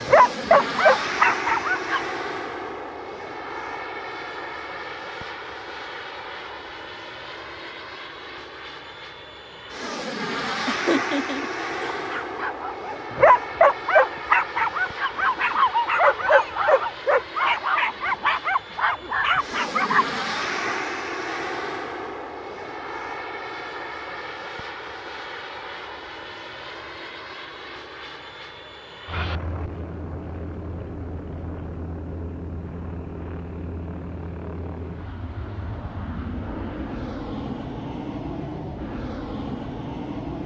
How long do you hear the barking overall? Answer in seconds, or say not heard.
10 s.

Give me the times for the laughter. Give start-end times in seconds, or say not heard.
10.7-12.0.